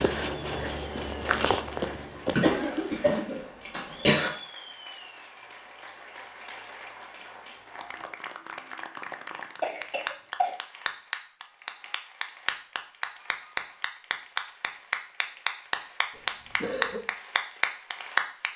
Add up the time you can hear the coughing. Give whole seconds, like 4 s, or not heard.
4 s.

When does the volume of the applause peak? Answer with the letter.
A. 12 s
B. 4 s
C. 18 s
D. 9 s
C.